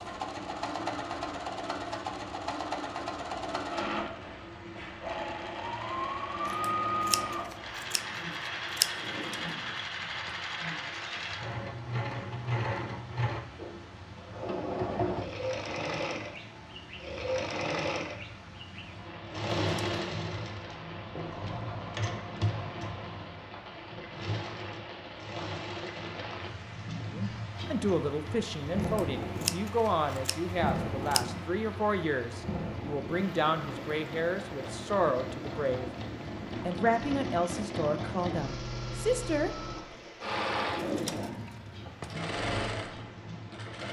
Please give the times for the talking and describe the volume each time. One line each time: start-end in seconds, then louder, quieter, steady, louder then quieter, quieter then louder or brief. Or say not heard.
27.1-40.0 steady.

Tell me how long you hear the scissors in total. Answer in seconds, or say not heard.
5 s.